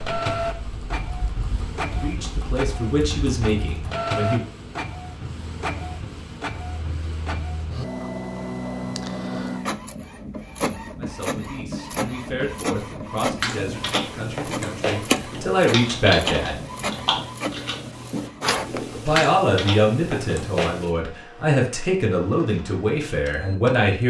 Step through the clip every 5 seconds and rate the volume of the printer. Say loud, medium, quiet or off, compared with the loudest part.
loud, loud, loud, loud, quiet.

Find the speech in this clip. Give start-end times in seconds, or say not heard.
1.9-4.5, 10.9-16.6, 18.9-24.0.